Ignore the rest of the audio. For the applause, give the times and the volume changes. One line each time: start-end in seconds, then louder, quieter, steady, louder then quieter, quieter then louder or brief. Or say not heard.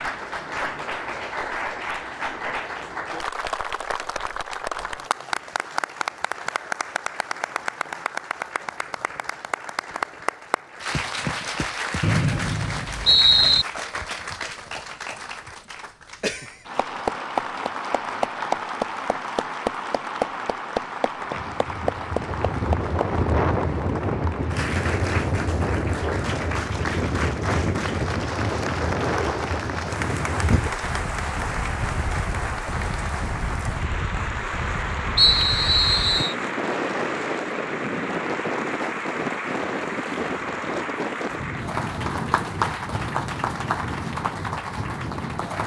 0.0-45.6 steady.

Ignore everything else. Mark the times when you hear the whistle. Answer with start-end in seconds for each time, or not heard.
12.0-13.7, 35.1-36.4.